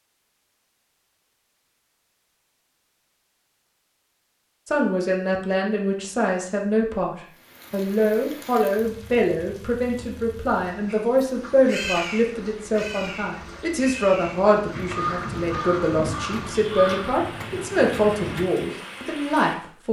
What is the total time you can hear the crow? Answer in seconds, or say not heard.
8 s.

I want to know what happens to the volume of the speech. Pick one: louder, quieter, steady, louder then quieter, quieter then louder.
steady.